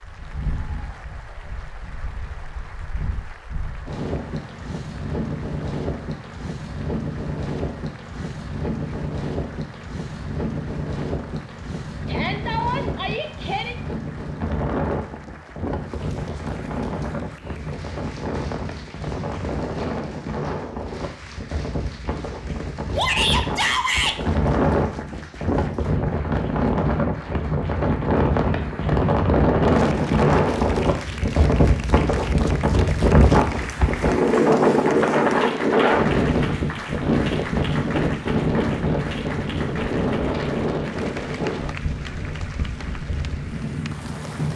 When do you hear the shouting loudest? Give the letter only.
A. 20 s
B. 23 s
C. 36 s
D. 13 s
B.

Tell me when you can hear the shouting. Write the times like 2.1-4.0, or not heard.
12.1-13.8, 22.9-24.1.